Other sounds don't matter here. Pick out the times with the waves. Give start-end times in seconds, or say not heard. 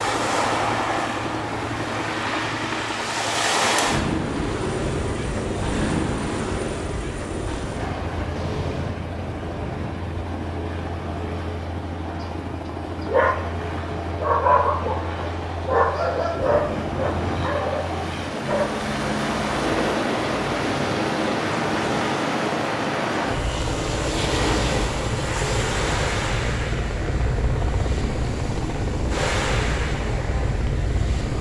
0.0-31.3.